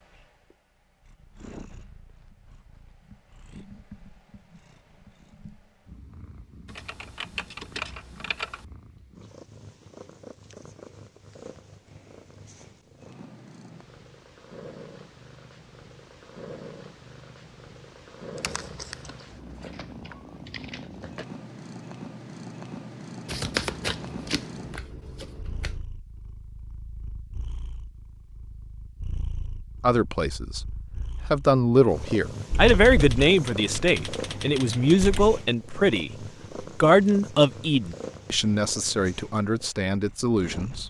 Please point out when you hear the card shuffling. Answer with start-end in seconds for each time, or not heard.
23.2-25.8.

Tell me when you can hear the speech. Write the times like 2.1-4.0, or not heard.
29.8-40.8.